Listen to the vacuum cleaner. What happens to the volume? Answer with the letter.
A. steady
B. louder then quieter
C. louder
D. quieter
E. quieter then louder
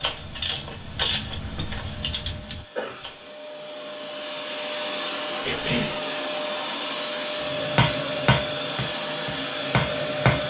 C.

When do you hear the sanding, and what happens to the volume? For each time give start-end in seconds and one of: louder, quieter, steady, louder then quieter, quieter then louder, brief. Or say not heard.
not heard.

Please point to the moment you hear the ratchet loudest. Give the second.
1 s.